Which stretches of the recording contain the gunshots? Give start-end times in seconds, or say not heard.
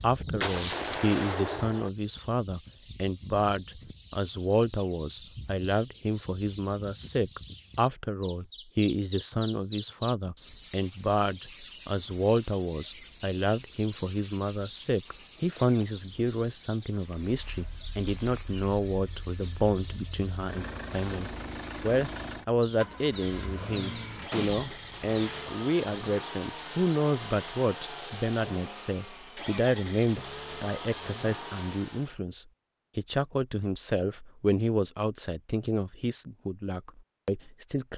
0.4-1.9, 24.3-25.6.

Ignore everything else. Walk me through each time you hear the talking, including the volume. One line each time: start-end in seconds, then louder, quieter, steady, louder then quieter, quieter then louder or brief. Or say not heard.
0.0-37.9 steady.